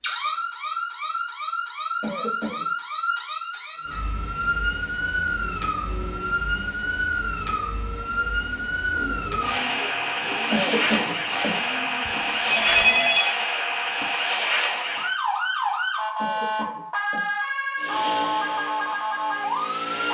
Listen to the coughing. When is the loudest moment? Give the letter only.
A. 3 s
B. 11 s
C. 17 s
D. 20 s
B.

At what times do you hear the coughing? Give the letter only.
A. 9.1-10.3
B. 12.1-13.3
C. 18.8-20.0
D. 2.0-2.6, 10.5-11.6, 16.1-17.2
D.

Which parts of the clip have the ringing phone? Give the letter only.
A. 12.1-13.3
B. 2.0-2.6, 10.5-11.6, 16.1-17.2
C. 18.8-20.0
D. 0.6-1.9
A.